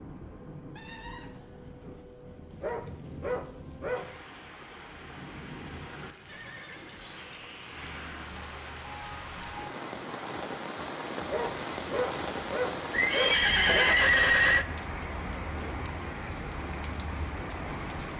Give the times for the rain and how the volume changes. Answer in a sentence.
The rain can be heard from 0.0 to 18.1 s, getting louder.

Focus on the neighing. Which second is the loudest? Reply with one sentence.
The volume of the neighing peaks at 14 seconds.